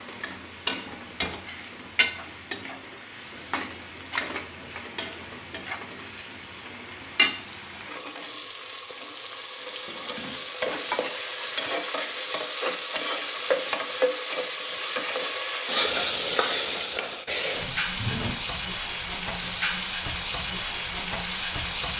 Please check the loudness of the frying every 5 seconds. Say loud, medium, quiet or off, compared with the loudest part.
medium, medium, loud, loud, loud.